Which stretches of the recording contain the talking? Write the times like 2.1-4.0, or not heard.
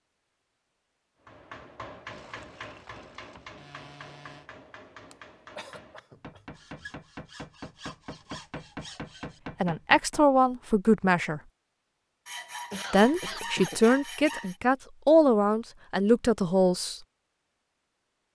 9.6-11.4, 12.9-17.0.